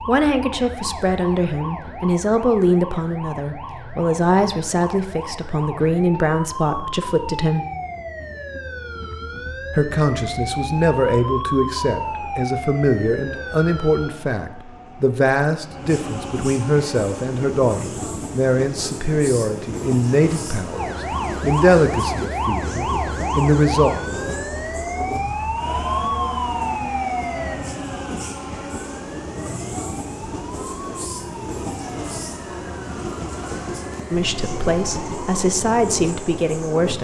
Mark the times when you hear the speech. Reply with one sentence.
The speech can be heard from 0.1 to 7.7 s, from 9.8 to 23.9 s and from 34.1 to 36.9 s.